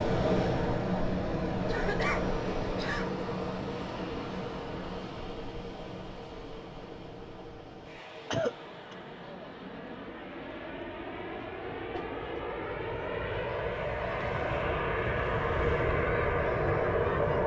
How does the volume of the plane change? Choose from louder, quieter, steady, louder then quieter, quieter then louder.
quieter then louder.